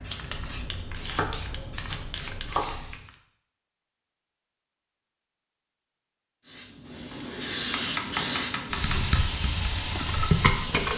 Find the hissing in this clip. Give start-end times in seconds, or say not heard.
0.0-3.1, 6.5-10.9.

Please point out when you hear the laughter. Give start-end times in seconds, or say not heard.
not heard.